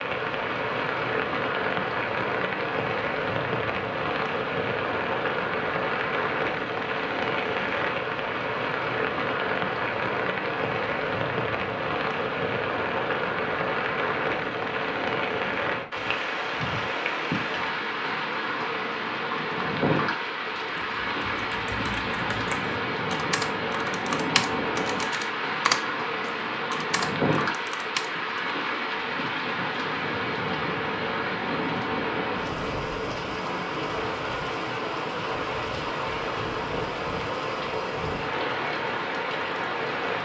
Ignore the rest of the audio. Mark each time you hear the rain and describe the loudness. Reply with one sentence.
You can hear the rain from 0.0 to 40.2 s, at a steady volume.